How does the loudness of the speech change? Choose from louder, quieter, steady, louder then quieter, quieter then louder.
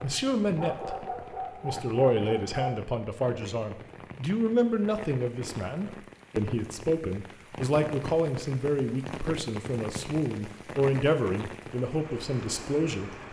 steady.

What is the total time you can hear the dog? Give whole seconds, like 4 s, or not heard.
3 s.